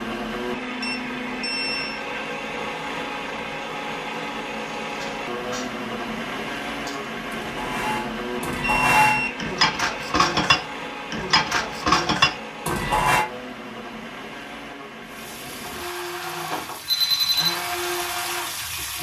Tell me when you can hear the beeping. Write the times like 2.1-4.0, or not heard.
0.8-2.0, 8.7-9.4, 16.9-17.6.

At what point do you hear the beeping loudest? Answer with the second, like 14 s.
17 s.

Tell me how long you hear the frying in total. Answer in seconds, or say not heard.
4 s.